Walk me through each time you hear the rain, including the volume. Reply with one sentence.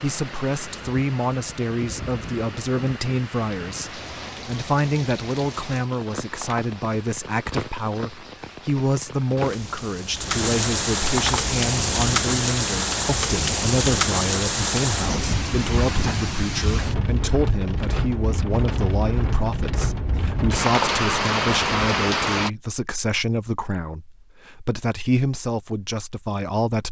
You can hear the rain from 0.0 to 22.5 s, getting louder.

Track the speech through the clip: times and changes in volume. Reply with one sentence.
The speech can be heard from 0.0 to 26.8 s, at a steady volume.